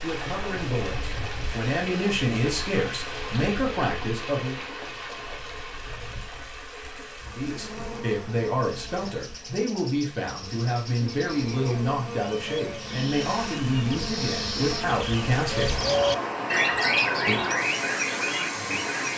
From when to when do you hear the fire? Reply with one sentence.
You can't hear the fire here.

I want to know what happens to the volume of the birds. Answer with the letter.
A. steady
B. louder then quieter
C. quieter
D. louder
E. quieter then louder
D.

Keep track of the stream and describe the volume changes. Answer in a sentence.
The loudness of the stream goes down, then up.